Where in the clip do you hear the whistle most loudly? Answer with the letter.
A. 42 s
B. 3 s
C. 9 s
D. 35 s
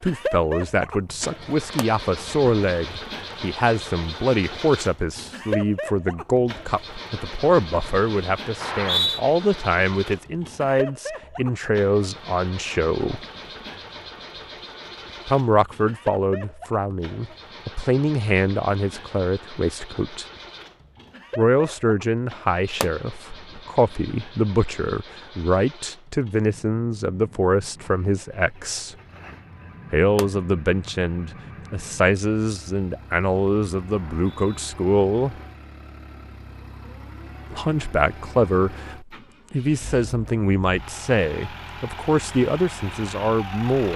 C.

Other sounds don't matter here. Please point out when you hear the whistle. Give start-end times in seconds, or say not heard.
8.6-9.2, 34.0-34.5.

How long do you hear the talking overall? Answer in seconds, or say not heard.
38 s.